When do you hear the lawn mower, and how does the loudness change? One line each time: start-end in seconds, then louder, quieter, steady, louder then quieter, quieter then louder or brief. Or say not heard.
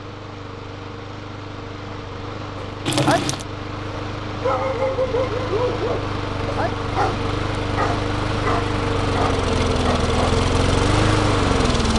0.0-11.9 louder.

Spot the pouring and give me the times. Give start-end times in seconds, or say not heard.
2.9-3.5.